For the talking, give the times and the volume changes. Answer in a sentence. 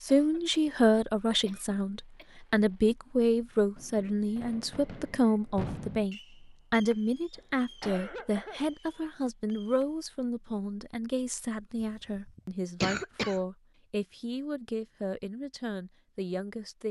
You can hear the talking from 0.0 to 16.8 s, getting quieter.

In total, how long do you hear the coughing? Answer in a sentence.
You can hear the coughing for 5 seconds altogether.